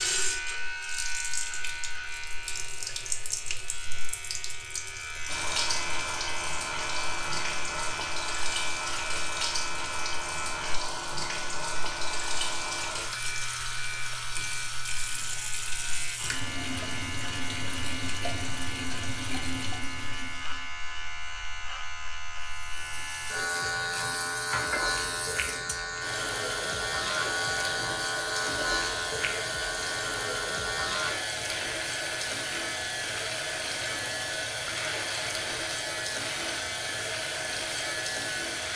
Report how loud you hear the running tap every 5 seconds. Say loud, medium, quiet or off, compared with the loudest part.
loud, loud, loud, loud, medium, loud, loud, loud.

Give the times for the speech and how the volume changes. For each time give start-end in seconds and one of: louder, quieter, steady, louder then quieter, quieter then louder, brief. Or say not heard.
not heard.